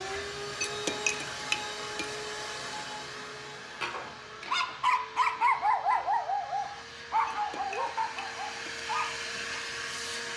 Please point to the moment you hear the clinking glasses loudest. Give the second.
1 s.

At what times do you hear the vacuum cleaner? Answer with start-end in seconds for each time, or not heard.
0.0-10.3.